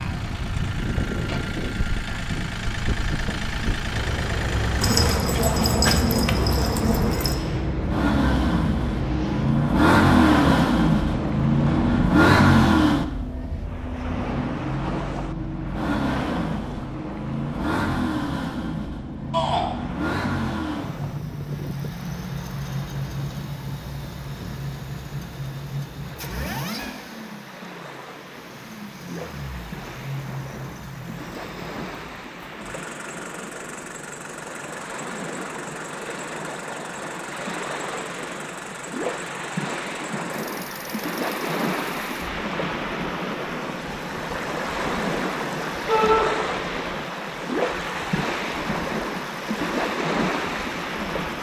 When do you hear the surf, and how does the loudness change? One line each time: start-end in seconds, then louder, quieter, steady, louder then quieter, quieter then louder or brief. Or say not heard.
0.0-51.3 quieter then louder.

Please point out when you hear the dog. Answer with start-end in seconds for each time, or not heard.
4.8-7.4.